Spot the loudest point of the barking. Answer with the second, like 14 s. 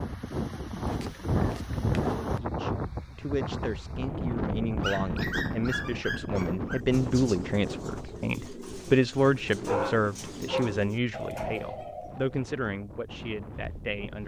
10 s.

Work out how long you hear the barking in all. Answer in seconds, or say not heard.
5 s.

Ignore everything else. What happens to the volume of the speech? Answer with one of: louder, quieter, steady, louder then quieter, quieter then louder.
louder then quieter.